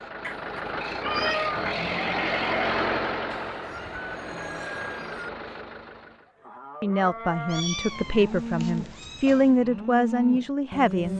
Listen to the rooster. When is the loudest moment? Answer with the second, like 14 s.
5 s.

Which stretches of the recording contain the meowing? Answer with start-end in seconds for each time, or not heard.
0.2-1.6, 7.5-9.6.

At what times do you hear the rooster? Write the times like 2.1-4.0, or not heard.
3.3-5.3.